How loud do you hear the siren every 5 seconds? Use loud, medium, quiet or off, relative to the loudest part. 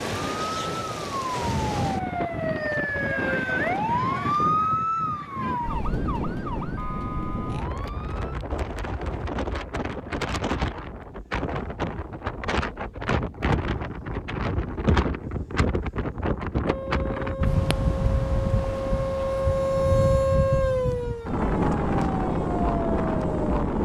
loud, medium, off, loud, loud.